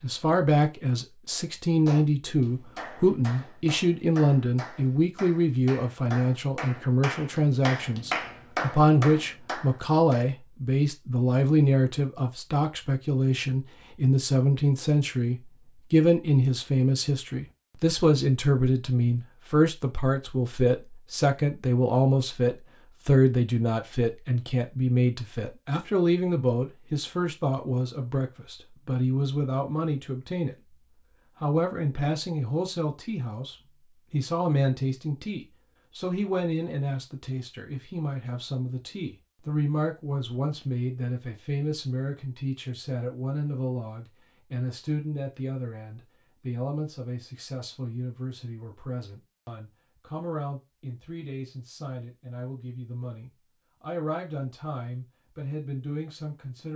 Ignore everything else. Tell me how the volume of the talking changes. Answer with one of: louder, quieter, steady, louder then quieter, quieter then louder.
quieter.